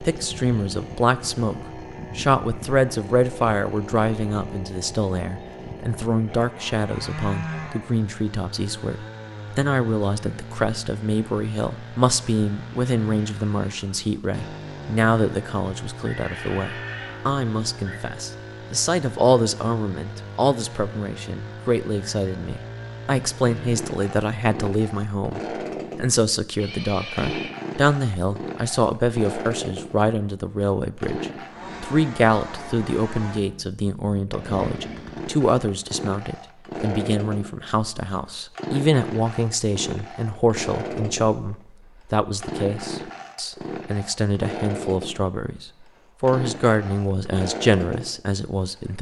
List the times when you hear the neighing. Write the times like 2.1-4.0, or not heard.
16.0-18.0, 26.6-27.6.